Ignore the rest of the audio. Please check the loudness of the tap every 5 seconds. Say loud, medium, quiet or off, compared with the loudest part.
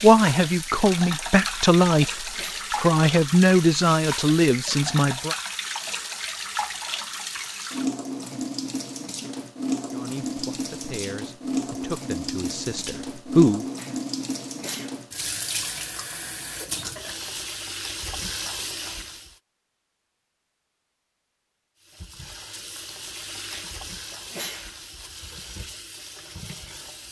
loud, loud, loud, loud, medium, medium.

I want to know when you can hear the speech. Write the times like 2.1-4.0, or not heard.
0.0-2.1, 2.8-5.3, 9.9-13.7.